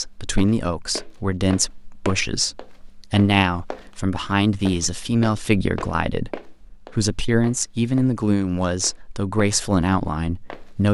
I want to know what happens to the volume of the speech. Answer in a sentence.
The loudness of the speech stays about the same.